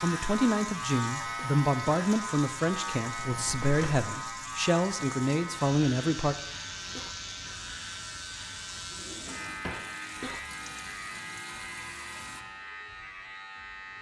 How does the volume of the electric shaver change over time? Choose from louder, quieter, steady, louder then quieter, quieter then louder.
quieter.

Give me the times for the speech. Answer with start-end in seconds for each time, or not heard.
0.0-6.3.